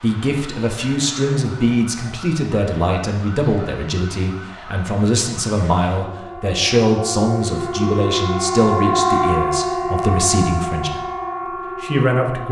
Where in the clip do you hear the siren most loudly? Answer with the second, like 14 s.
9 s.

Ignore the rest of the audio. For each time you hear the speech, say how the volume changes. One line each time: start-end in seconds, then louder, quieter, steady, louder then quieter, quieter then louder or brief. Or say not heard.
0.0-11.1 steady
11.8-12.4 brief.